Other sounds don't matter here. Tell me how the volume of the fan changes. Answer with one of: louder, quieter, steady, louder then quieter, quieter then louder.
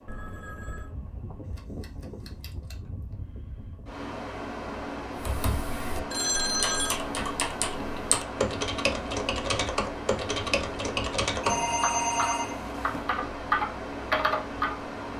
louder.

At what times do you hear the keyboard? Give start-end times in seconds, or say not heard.
5.2-14.8.